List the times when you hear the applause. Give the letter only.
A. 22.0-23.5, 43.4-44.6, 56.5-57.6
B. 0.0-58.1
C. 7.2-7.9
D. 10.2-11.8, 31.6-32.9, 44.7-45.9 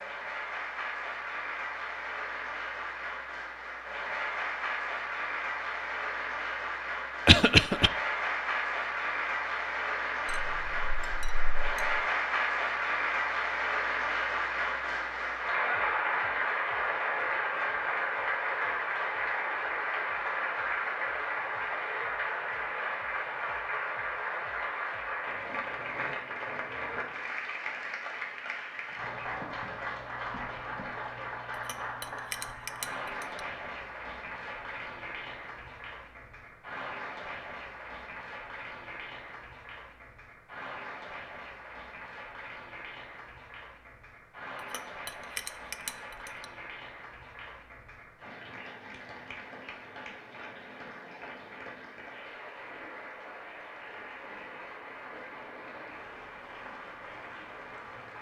B.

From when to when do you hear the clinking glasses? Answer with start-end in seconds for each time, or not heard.
10.2-11.8, 31.6-32.9, 44.7-45.9.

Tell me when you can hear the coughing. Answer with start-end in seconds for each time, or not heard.
7.2-7.9.